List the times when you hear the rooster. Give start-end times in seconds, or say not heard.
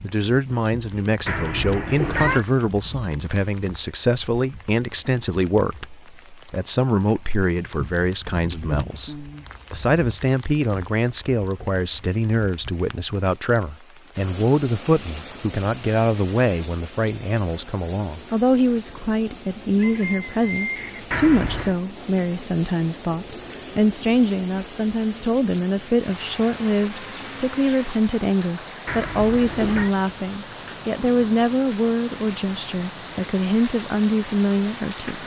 19.8-21.1.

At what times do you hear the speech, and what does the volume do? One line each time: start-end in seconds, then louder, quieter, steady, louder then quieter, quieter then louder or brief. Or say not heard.
0.0-35.2 steady.